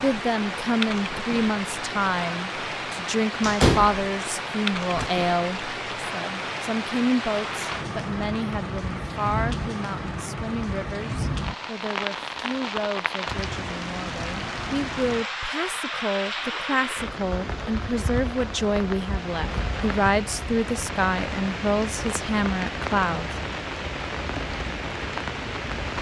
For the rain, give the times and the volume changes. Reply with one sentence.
You can hear the rain from 0.0 to 25.9 s, at a steady volume.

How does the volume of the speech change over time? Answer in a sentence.
The loudness of the speech goes down, then up.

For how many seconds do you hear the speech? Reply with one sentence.
You can hear the speech for 23 seconds altogether.